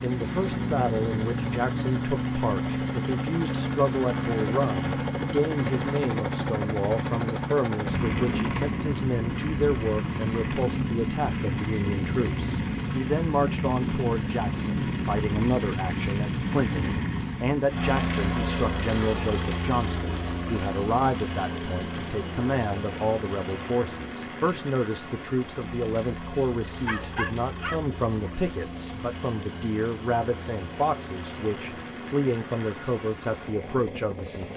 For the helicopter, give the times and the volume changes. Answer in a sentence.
You can hear the helicopter from 0.0 to 34.5 s, getting quieter.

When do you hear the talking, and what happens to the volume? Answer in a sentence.
The talking can be heard from 0.0 to 34.5 s, at a steady volume.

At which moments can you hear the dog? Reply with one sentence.
The dog can be heard from 26.9 to 28.3 s.